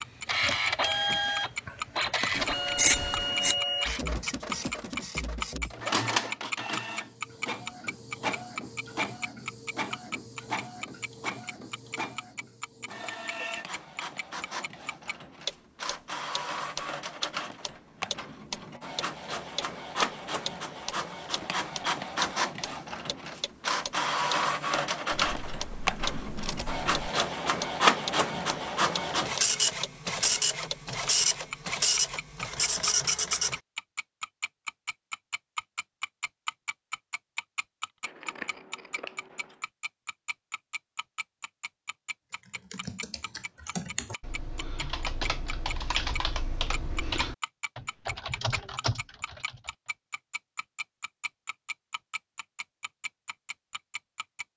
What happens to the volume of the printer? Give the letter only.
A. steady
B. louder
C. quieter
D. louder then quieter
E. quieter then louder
E.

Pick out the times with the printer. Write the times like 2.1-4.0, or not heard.
0.1-33.6.